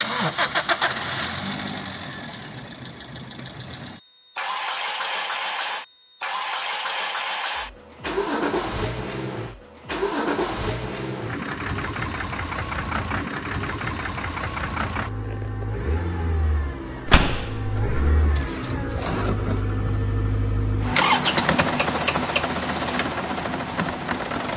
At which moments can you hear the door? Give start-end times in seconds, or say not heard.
17.1-18.0.